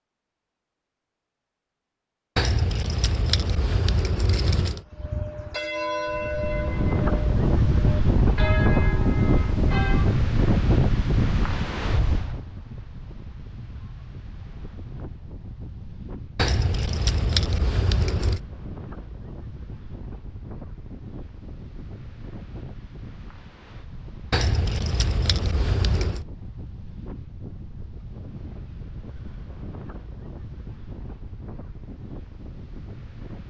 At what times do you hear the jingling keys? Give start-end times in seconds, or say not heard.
2.4-4.8, 16.4-18.4, 24.3-26.2.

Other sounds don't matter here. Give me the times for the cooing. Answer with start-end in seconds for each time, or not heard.
not heard.